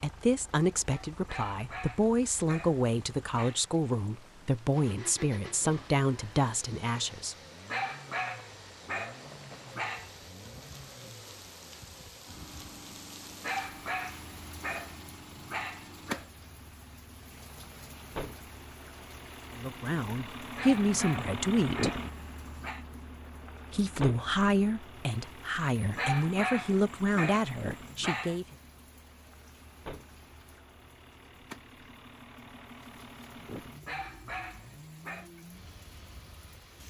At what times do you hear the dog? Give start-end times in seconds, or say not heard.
1.2-3.6, 7.7-10.1, 13.4-16.2, 20.6-22.9, 25.9-28.4, 33.9-35.3.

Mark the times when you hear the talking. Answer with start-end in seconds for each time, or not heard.
0.0-7.3, 19.6-21.9, 23.7-28.6.